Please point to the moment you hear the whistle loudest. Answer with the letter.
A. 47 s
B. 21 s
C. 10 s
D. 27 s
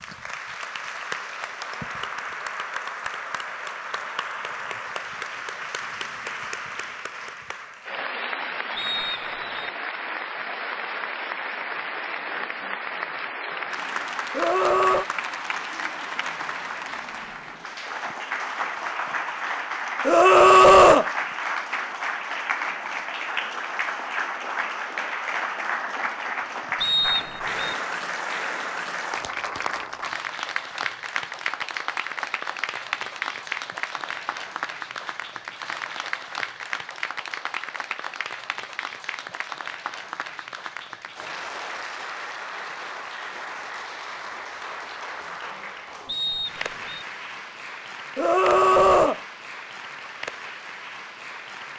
D.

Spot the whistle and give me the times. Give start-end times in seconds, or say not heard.
8.8-9.7, 26.8-27.8, 46.0-47.0.